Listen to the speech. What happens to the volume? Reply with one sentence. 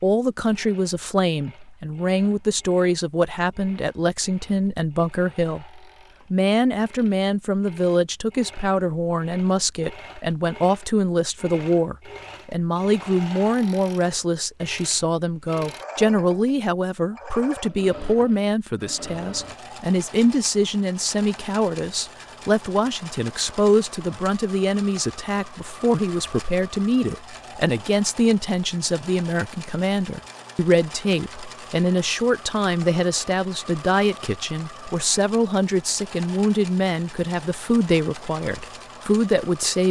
The loudness of the speech stays about the same.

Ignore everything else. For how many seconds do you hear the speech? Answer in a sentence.
The speech can be heard for 40 seconds in total.